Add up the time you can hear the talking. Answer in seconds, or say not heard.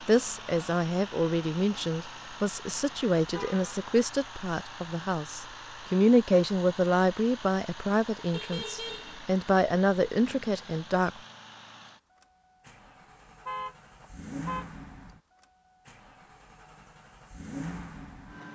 11 s.